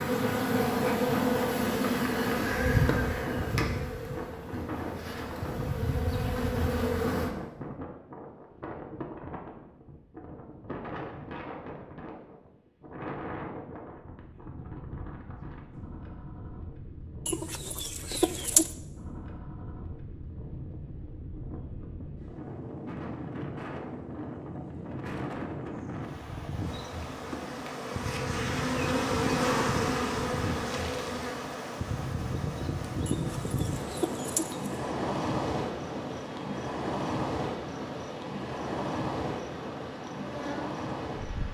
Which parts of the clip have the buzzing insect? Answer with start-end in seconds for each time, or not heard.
0.0-7.3, 26.6-41.4.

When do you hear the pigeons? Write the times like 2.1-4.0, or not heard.
17.2-18.7, 33.0-34.6.